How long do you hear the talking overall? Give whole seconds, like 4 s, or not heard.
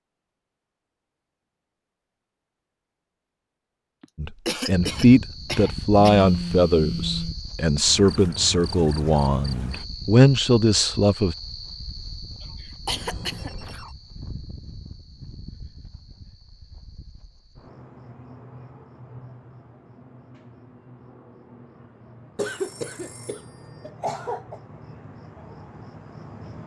7 s.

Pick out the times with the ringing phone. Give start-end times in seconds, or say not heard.
6.2-7.3, 12.9-13.9, 22.4-23.6.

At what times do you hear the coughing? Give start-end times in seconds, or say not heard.
4.0-6.2, 12.4-13.8, 22.4-24.6.